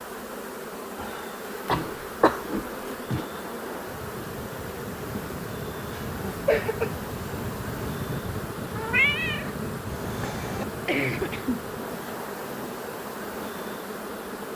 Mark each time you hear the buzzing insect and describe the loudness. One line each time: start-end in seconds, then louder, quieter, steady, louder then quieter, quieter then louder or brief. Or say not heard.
0.0-14.5 steady.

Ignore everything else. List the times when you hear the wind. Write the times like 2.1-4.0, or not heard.
3.2-14.5.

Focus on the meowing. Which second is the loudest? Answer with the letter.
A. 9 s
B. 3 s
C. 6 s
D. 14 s
A.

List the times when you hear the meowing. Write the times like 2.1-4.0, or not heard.
1.7-3.2, 8.8-10.7.